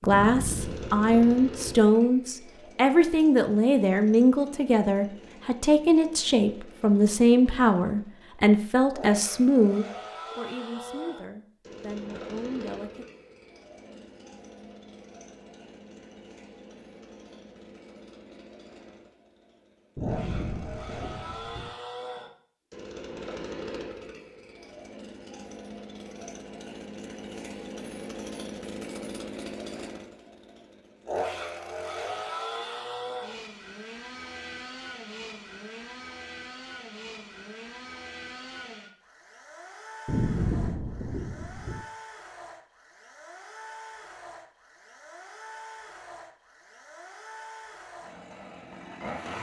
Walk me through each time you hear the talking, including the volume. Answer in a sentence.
The talking can be heard from 0.0 to 13.1 s, getting quieter.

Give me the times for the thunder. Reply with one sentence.
You can hear the thunder from 0.1 to 1.9 s, from 19.9 to 21.7 s and from 40.0 to 41.9 s.